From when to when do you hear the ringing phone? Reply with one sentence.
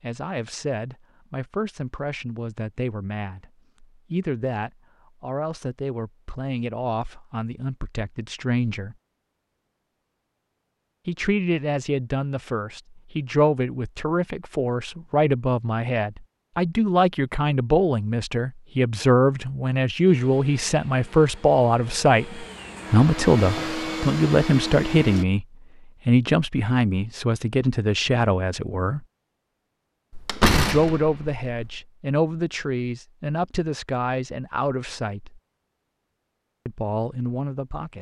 You can't hear the ringing phone here.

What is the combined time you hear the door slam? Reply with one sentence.
The door slam can be heard for 2 seconds in total.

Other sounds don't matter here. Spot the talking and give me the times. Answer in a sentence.
You can hear the talking from 0.0 to 8.9 s, from 11.1 to 25.4 s, from 26.1 to 29.1 s, from 30.5 to 35.4 s and from 36.6 to 37.9 s.